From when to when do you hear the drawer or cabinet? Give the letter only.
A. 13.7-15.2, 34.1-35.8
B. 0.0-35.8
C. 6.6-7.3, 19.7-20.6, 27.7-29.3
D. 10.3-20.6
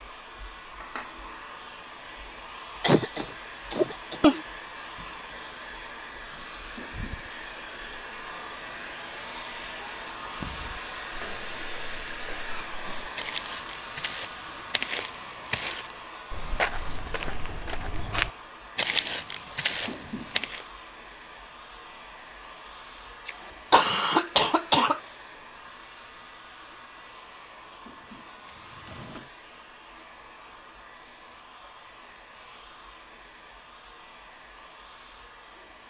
C.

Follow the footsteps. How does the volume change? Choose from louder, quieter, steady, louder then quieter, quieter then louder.
louder.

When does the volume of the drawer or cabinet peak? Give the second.
20 s.